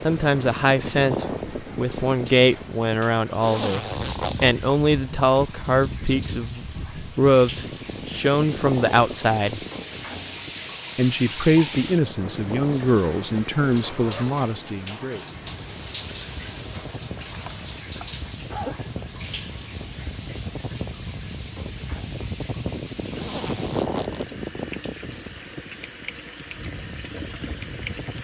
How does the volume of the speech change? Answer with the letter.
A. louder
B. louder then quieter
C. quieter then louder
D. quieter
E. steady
E.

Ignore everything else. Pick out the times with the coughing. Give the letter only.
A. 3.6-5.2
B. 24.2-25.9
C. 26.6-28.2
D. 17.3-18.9
D.